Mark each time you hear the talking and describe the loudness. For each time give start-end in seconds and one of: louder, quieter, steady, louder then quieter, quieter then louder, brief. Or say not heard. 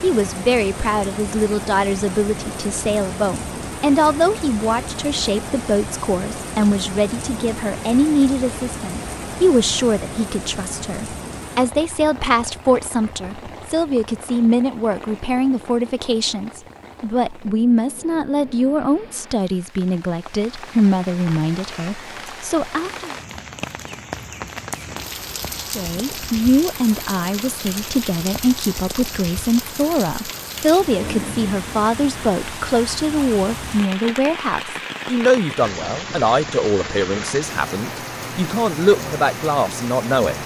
0.0-23.1 steady
25.6-40.4 steady.